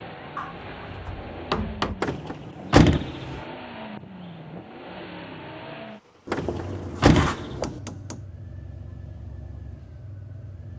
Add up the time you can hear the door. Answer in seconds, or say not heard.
3 s.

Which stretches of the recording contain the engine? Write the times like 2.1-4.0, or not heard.
0.0-10.7.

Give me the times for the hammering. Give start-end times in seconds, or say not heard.
0.3-2.0, 6.2-8.2.